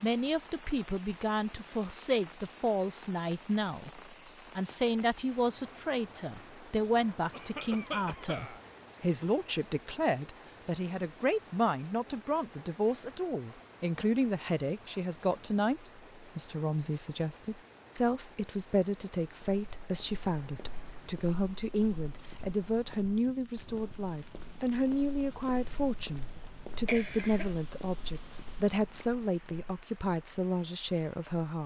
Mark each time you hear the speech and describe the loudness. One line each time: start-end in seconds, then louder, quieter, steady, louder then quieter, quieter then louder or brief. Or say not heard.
0.0-31.6 steady.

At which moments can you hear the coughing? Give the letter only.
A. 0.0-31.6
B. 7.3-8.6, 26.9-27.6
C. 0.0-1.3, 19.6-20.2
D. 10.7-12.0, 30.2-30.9
B.